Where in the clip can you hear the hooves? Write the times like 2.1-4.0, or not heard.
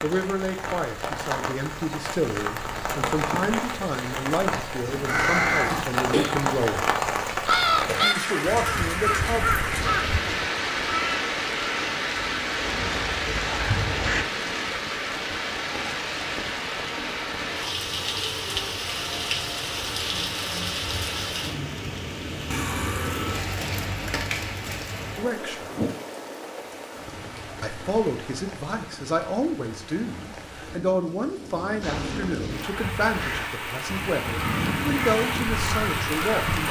not heard.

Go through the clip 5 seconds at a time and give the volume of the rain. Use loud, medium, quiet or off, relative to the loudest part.
loud, loud, loud, loud, loud, medium, medium, loud.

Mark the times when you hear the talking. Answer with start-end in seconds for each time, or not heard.
0.0-7.0, 8.0-9.5, 25.1-25.6, 27.6-36.6.